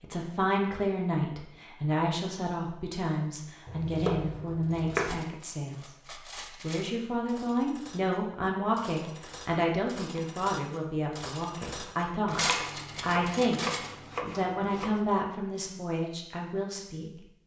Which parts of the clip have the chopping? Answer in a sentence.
The chopping can be heard from 3.6 to 5.2 s and from 12.2 to 15.0 s.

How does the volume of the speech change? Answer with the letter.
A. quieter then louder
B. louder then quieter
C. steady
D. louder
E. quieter
C.